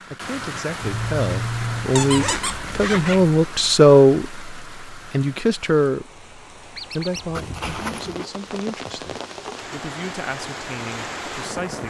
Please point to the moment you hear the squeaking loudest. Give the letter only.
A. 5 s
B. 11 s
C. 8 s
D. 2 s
D.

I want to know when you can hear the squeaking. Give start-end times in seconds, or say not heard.
1.9-2.6, 6.8-7.3.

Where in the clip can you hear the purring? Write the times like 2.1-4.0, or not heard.
not heard.